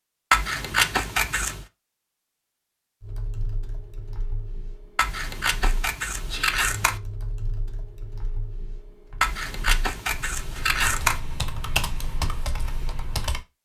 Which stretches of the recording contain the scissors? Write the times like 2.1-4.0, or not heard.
0.3-1.6, 5.0-7.0, 9.2-11.2.